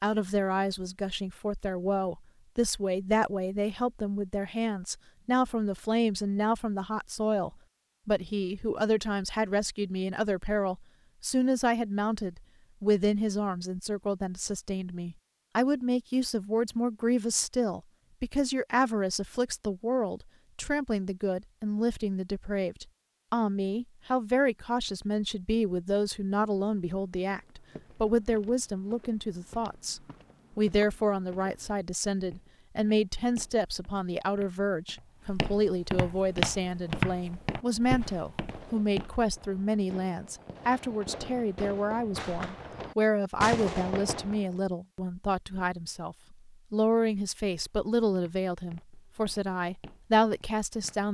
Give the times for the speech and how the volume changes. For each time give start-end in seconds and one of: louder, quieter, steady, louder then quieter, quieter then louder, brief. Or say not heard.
0.0-51.0 steady.